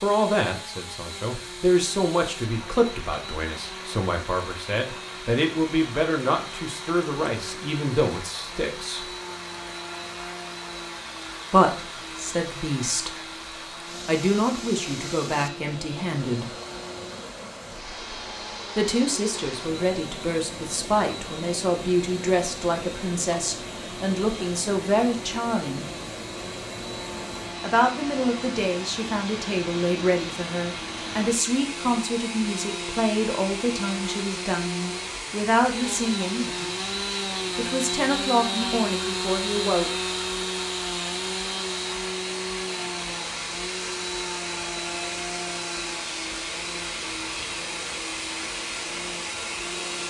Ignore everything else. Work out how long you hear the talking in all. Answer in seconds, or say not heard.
32 s.